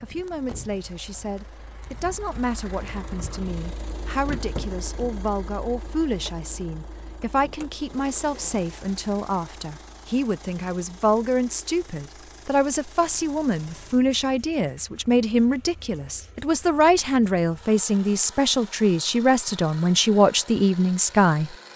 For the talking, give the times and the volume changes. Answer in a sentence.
You can hear the talking from 0.0 to 21.5 s, getting louder.